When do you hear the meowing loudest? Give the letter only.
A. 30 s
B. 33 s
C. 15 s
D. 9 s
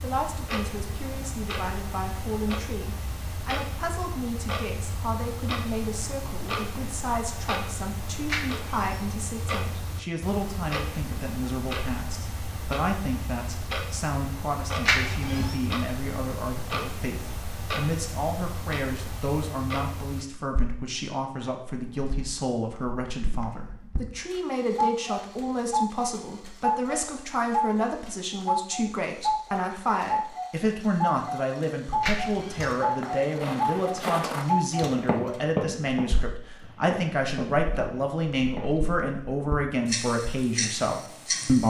C.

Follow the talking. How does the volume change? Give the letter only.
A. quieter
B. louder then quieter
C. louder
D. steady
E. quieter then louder
C.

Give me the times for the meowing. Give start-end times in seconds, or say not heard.
8.2-9.0, 14.8-15.6, 32.0-32.8.